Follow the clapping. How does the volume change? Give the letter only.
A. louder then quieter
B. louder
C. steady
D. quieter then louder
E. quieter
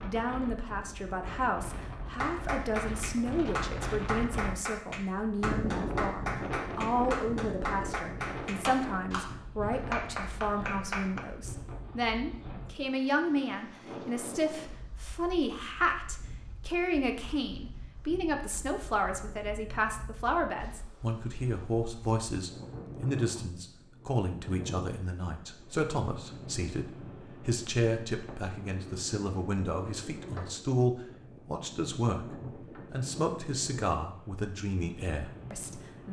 C.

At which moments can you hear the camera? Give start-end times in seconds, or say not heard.
not heard.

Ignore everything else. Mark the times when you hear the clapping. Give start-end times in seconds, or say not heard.
2.1-11.2.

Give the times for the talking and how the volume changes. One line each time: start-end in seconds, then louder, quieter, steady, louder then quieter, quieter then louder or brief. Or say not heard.
0.0-36.0 steady.